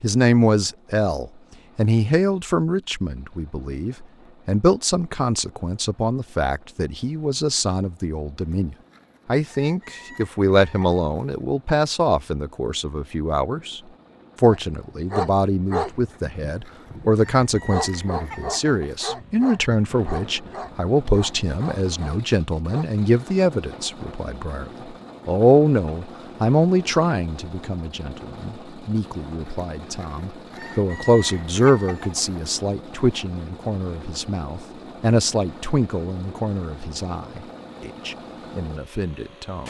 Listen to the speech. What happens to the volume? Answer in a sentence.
The volume of the speech stays about the same.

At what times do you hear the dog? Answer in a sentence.
You can hear the dog from 14.5 to 22.9 s.